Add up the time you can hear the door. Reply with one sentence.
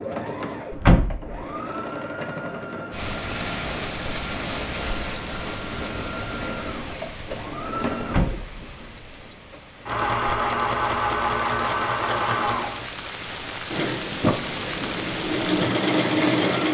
You can hear the door for 2 seconds altogether.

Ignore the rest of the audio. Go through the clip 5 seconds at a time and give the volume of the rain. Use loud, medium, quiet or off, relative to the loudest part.
loud, medium, loud, loud.